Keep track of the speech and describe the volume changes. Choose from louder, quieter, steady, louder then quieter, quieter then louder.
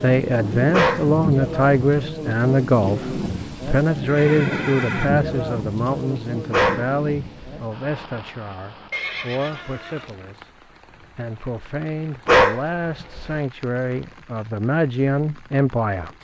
quieter then louder.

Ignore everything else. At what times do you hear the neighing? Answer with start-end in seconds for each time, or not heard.
4.0-5.1, 8.9-10.2.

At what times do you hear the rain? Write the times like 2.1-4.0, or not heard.
0.0-16.1.